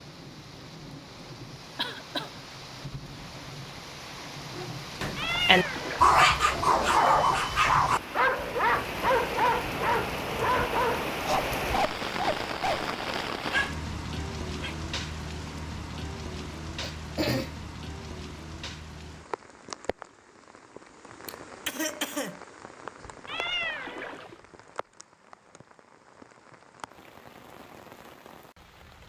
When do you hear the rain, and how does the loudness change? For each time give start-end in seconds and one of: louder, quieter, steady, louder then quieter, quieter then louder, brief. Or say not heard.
0.0-29.0 louder then quieter.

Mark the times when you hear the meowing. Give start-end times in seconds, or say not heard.
5.2-6.8, 23.2-24.4.